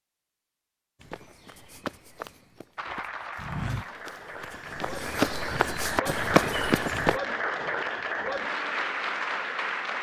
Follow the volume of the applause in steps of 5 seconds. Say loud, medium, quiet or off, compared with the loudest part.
medium, loud.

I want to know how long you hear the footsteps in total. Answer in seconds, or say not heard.
6 s.